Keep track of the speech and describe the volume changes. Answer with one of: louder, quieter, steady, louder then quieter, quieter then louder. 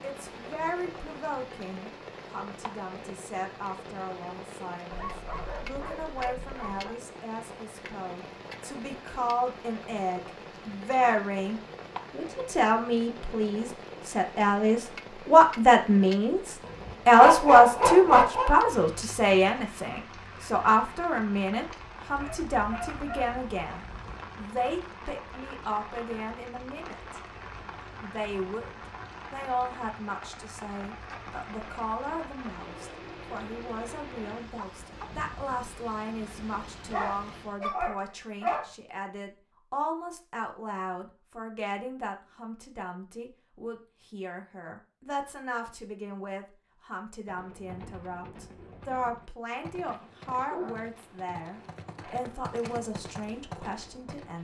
louder then quieter.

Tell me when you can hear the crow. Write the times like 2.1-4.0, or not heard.
not heard.